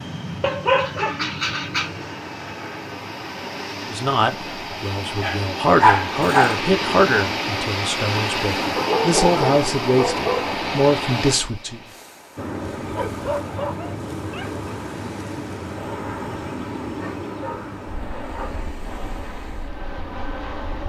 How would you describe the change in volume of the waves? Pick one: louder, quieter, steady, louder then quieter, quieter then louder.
louder then quieter.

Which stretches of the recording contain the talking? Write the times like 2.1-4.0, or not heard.
3.9-11.8.